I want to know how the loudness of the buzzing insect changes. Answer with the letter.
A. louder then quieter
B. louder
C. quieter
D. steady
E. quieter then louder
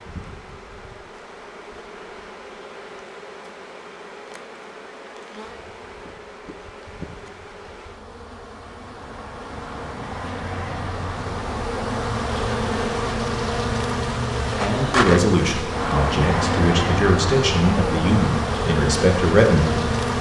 B.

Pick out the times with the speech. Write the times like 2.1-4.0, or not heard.
14.6-19.9.